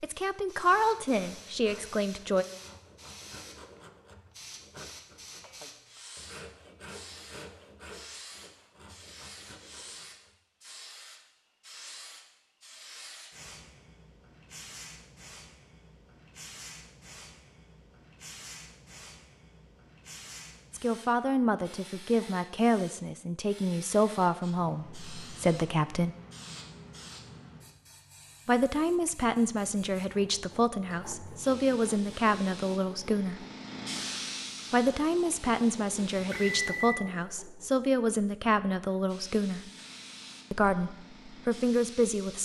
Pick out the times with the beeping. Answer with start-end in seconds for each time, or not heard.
36.3-37.0.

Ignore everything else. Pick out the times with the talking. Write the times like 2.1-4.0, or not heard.
0.0-2.5, 20.7-26.1, 28.4-33.5, 34.7-39.6, 40.5-42.4.